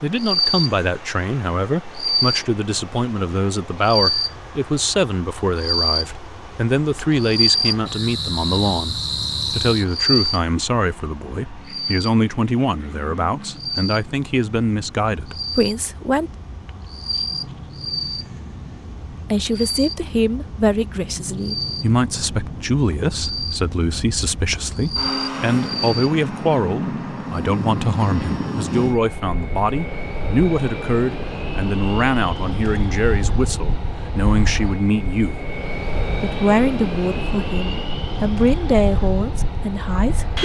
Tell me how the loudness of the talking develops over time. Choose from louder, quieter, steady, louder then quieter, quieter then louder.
steady.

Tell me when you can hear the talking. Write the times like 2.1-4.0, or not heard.
0.0-16.3, 19.3-35.5, 36.1-40.4.